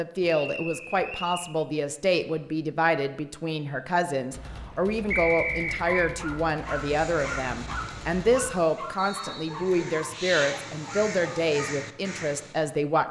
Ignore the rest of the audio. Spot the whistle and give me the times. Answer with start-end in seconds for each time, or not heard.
0.2-1.5, 5.1-6.1, 8.9-9.8.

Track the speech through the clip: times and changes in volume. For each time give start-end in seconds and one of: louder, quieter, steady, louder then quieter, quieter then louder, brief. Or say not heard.
0.0-13.0 steady.